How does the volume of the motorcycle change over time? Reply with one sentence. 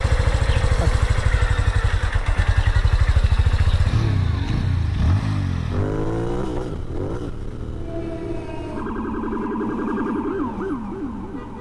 The loudness of the motorcycle goes down.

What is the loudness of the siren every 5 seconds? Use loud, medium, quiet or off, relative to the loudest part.
off, loud, loud.